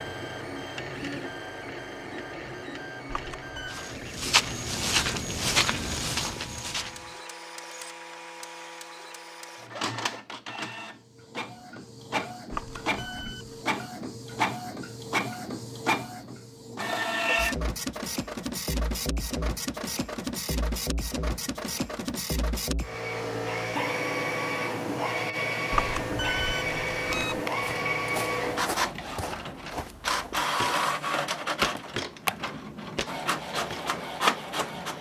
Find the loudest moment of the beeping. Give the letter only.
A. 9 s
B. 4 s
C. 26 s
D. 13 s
C.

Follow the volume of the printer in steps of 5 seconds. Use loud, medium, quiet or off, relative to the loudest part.
medium, medium, medium, loud, loud, loud, loud.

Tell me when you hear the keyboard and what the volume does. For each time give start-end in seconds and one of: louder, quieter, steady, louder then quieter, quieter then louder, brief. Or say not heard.
not heard.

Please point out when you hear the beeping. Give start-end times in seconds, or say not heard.
3.0-3.8, 12.5-13.6, 25.7-27.4.